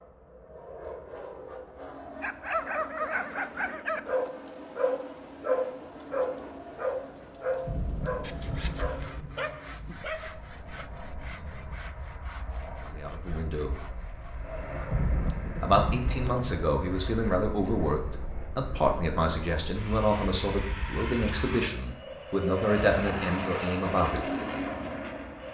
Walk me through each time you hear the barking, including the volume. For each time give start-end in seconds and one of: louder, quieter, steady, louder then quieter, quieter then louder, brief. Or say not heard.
2.2-10.8 quieter.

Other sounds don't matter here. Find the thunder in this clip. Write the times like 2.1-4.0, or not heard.
7.7-9.3, 14.8-16.5.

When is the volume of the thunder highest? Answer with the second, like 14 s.
15 s.